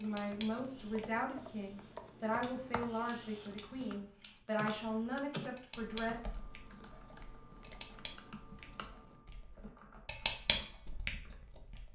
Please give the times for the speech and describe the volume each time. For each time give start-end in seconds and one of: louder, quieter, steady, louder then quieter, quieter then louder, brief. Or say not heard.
0.0-6.2 steady.